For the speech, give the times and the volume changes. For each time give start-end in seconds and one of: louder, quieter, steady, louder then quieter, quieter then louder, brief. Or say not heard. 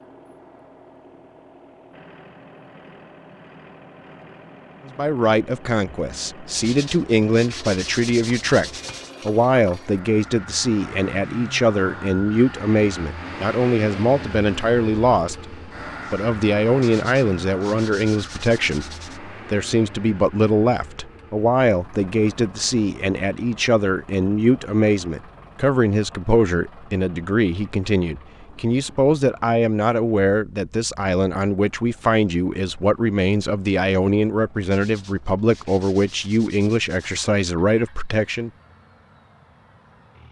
4.8-38.5 steady.